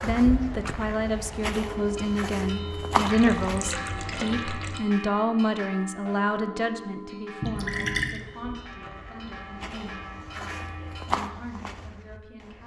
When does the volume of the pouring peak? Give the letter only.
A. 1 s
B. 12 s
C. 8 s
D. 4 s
C.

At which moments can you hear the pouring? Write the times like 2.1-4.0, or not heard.
3.0-4.8, 7.4-8.2.